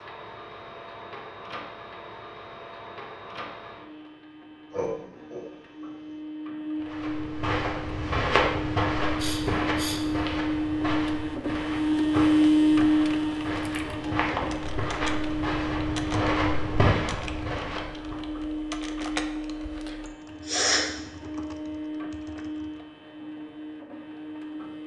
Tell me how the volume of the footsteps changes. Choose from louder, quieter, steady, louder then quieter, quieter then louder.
quieter then louder.